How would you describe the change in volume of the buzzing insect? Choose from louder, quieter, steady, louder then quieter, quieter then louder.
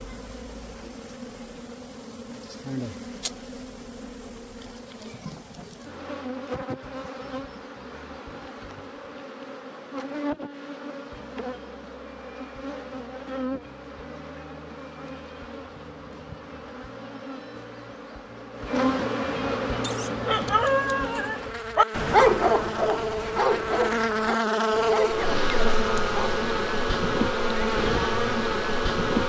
louder.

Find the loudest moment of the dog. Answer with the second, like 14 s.
22 s.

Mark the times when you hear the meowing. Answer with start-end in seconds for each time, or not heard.
not heard.